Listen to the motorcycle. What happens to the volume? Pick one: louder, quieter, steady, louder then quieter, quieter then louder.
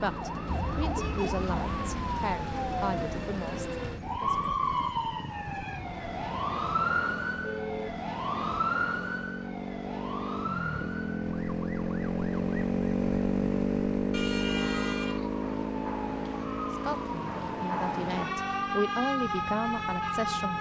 louder then quieter.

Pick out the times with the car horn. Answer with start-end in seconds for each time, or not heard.
0.9-1.4, 7.4-8.0, 14.1-15.3.